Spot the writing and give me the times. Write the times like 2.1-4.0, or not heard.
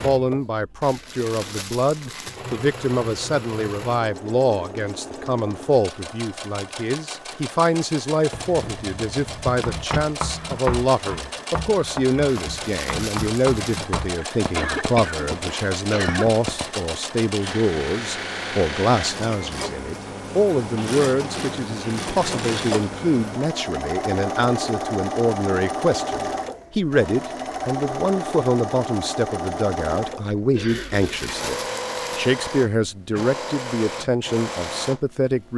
9.4-16.8.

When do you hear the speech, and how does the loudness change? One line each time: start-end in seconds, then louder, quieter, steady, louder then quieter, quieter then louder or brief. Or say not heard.
0.0-35.5 steady.